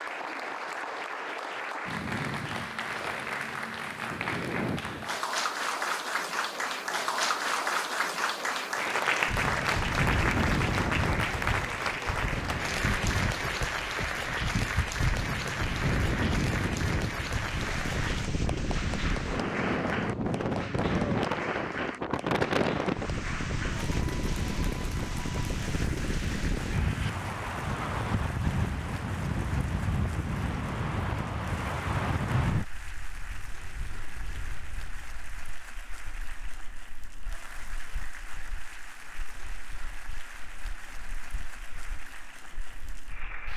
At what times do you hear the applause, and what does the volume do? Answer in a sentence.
You can hear the applause from 0.0 to 43.5 s, getting quieter.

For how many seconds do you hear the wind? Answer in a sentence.
The wind can be heard for 34 seconds in total.